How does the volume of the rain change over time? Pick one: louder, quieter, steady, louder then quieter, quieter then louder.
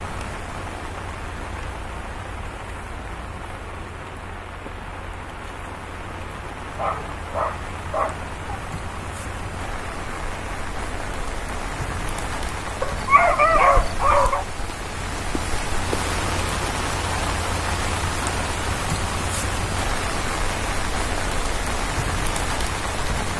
louder.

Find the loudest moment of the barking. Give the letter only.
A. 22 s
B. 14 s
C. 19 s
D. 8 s
B.